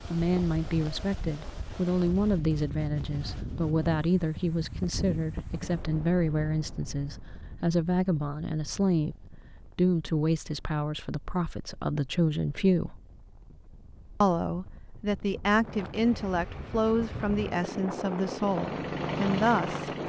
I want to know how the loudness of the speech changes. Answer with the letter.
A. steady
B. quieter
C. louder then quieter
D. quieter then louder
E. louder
A.